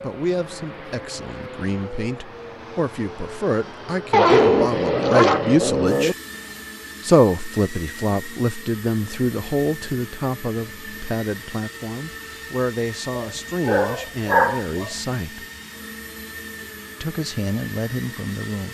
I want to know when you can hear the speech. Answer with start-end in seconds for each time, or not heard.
0.0-6.2, 7.0-15.4, 17.0-18.6.